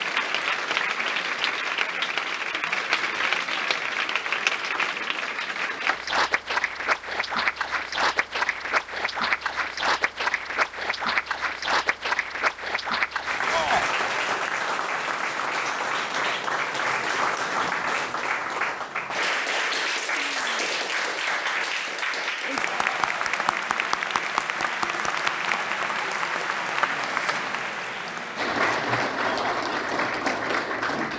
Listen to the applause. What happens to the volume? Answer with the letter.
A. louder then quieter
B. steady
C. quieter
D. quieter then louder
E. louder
B.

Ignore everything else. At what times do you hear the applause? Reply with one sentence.
You can hear the applause from 0.0 to 31.1 s.